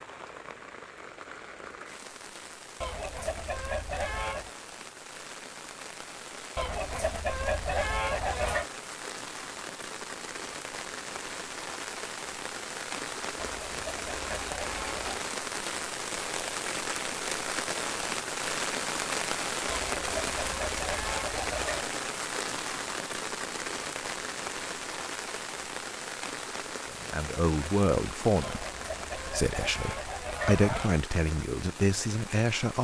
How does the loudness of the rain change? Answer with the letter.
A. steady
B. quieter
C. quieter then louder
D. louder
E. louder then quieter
E.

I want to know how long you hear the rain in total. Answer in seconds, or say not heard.
33 s.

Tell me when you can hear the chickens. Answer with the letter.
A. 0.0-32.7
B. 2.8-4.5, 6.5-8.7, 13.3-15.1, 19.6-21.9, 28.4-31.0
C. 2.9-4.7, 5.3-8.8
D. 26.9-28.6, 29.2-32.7
B.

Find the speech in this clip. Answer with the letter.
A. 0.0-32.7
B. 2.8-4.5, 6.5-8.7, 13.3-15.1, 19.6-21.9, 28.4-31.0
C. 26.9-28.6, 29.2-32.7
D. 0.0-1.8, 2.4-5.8
C.